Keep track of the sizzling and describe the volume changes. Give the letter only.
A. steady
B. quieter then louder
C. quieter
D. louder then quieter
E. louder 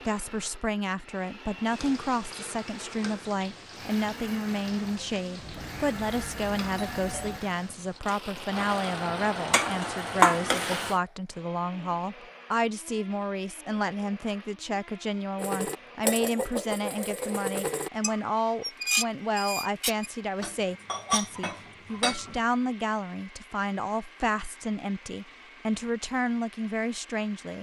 E.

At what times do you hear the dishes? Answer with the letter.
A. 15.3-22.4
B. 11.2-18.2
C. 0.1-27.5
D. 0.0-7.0
A.